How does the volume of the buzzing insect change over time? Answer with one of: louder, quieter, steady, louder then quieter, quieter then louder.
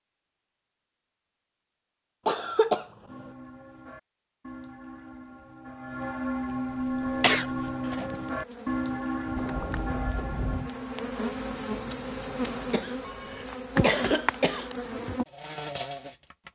louder.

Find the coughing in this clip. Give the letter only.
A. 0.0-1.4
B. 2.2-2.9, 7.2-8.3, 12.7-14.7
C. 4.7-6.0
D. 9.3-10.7
B.